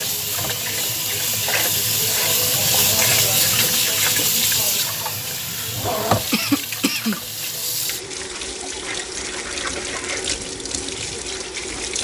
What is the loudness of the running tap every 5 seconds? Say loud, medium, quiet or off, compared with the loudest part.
loud, medium, medium.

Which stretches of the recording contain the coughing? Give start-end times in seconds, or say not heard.
6.3-7.2.